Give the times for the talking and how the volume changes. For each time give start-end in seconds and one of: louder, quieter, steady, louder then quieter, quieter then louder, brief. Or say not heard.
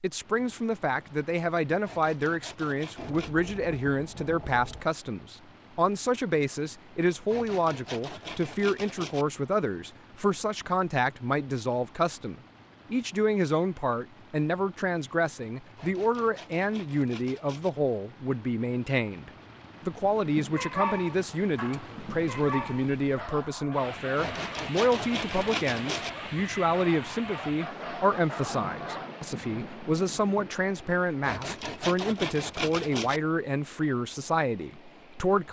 0.0-35.4 steady.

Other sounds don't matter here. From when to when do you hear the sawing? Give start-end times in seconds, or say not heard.
1.8-3.4, 7.2-9.2, 15.8-17.7, 24.1-26.1, 31.2-33.2.